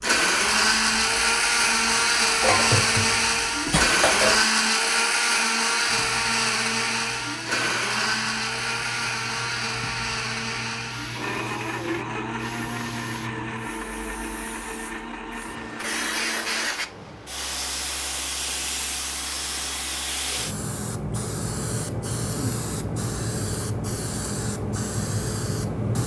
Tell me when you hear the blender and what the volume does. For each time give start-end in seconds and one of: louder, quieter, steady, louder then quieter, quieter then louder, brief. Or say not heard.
0.0-16.7 quieter.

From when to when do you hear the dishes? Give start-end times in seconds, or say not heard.
2.4-4.5.